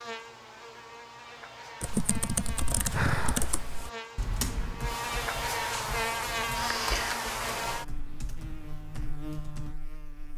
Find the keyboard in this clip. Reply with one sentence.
The keyboard can be heard from 1.8 to 9.8 s.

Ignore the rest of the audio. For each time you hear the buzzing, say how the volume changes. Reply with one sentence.
The buzzing can be heard from 0.0 to 10.3 s, getting louder then quieter.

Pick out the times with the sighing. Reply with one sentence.
You can hear the sighing from 2.9 to 3.6 s and from 6.5 to 7.2 s.